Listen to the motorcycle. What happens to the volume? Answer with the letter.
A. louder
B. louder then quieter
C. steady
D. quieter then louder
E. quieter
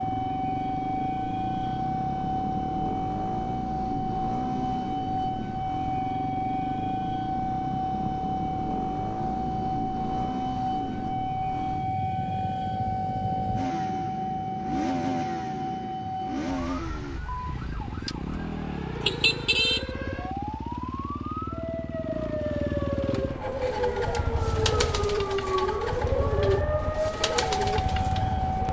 C.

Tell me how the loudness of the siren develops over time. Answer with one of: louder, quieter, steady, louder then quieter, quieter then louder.
quieter then louder.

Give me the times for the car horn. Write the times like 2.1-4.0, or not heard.
19.0-19.9.